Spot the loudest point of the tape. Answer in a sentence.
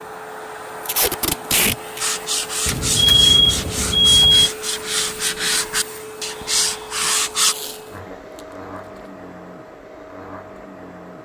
The volume of the tape peaks at 2 seconds.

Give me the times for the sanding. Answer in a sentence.
You can hear the sanding from 2.0 to 7.5 s.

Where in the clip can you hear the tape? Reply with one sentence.
The tape can be heard from 0.8 to 2.0 s and from 7.3 to 8.4 s.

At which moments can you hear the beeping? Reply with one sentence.
The beeping can be heard from 2.6 to 4.5 s.